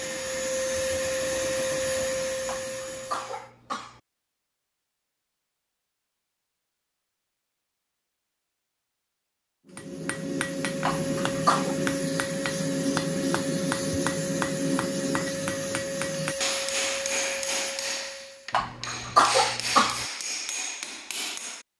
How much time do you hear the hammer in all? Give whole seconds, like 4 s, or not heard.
12 s.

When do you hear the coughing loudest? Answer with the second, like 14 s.
19 s.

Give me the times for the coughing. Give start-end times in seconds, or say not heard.
2.5-4.0, 10.8-11.8, 18.5-20.1.